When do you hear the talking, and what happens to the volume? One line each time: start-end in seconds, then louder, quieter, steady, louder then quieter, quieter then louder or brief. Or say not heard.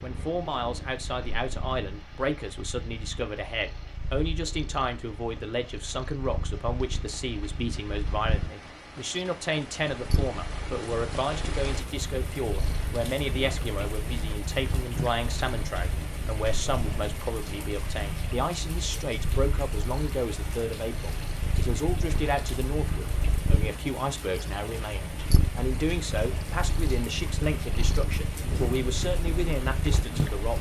0.0-30.5 steady.